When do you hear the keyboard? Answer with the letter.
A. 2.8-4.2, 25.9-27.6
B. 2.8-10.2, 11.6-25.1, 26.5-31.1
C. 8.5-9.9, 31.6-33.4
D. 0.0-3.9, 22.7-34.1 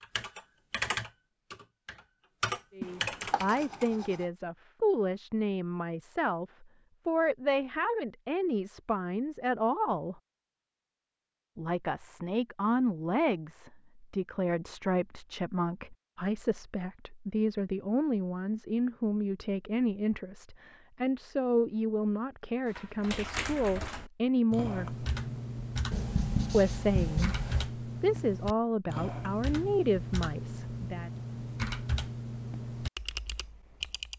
D.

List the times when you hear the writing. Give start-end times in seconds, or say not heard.
2.8-4.2, 25.9-27.6.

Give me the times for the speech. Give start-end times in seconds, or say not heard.
2.8-10.2, 11.6-25.1, 26.5-31.1.